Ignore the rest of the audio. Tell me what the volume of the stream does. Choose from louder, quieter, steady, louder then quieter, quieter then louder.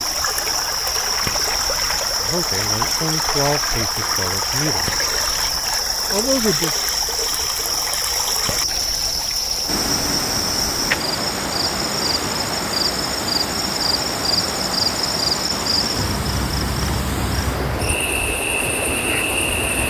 steady.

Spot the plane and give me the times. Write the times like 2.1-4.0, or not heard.
not heard.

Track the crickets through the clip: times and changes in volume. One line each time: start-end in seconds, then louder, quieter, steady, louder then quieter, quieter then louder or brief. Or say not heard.
0.0-19.8 steady.